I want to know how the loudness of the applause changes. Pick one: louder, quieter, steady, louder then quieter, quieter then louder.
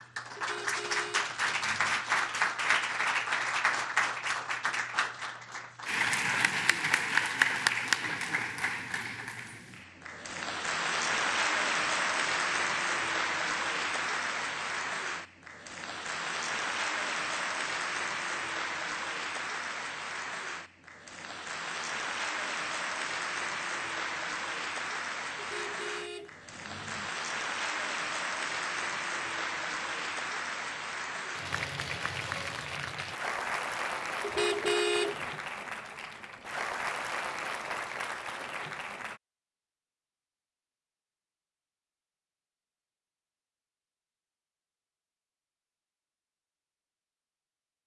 quieter.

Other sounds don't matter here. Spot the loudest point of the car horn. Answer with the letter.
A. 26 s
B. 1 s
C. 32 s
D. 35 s
D.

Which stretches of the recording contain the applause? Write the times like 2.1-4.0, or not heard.
0.0-39.2.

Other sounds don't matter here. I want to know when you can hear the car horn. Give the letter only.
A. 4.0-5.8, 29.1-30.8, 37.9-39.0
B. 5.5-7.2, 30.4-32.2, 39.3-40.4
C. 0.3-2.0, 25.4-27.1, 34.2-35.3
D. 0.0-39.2
C.